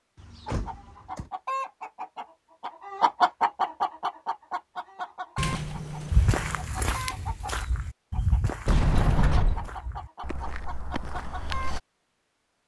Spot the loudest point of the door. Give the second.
9 s.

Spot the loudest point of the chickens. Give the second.
3 s.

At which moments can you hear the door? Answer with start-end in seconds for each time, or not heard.
0.1-1.3, 5.3-6.8, 8.7-9.7.